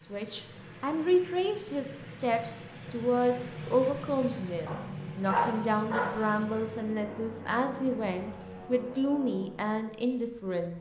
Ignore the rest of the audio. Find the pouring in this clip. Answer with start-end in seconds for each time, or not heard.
not heard.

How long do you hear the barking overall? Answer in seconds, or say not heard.
2 s.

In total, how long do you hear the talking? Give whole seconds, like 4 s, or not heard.
11 s.